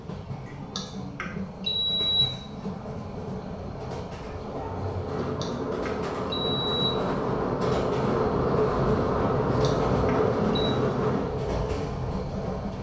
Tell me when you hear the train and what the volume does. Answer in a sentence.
The train can be heard from 0.0 to 12.7 s, getting louder.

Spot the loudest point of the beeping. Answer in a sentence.
The volume of the beeping peaks at 2 seconds.